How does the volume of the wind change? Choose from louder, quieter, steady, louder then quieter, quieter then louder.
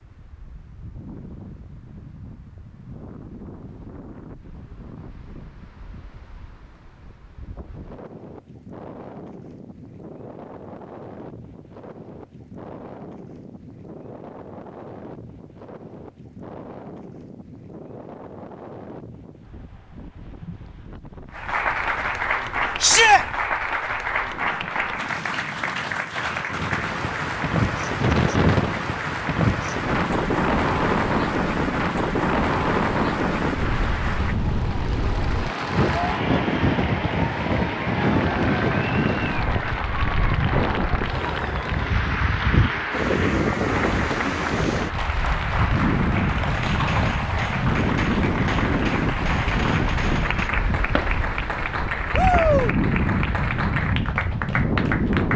louder.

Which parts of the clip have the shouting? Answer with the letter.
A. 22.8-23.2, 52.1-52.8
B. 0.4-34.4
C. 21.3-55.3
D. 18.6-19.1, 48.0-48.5
A.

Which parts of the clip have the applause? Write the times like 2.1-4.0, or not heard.
21.3-55.3.